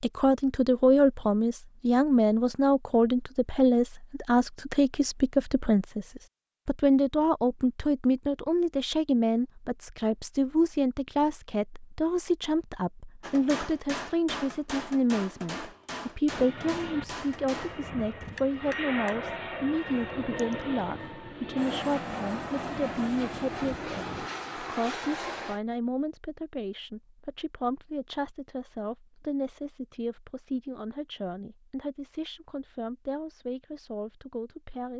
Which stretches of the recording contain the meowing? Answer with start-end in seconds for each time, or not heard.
not heard.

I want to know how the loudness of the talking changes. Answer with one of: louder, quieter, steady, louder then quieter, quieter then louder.
quieter.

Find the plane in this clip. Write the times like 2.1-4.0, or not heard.
16.2-25.6.